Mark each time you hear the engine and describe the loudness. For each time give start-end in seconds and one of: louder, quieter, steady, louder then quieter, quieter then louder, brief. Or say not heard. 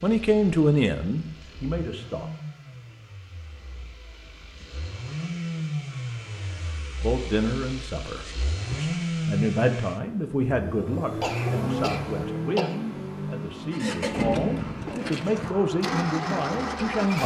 0.0-17.2 louder.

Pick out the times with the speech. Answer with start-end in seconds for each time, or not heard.
0.0-2.3, 7.0-17.2.